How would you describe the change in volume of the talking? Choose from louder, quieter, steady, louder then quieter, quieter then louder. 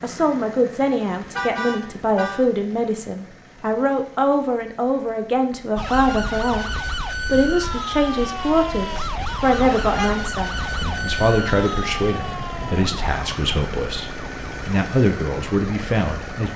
steady.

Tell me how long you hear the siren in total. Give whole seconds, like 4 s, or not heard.
11 s.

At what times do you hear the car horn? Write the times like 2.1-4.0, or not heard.
1.4-2.4, 9.6-10.2.